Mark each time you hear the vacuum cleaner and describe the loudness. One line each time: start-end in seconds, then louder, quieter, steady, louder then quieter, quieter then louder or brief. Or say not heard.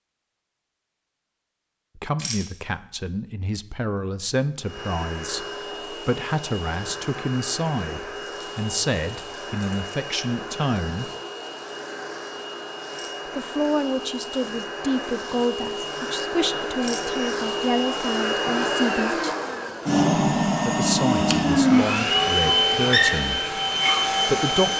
4.6-24.7 louder.